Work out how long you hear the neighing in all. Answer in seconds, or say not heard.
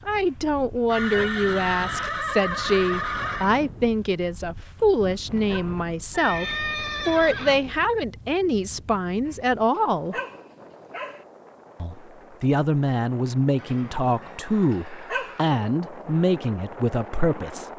6 s.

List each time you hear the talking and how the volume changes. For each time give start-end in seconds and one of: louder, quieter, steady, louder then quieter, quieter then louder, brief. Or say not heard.
0.1-10.2 steady
11.8-17.6 steady.